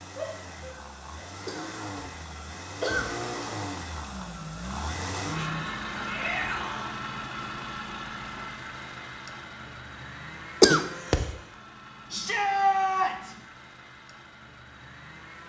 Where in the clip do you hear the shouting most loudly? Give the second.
13 s.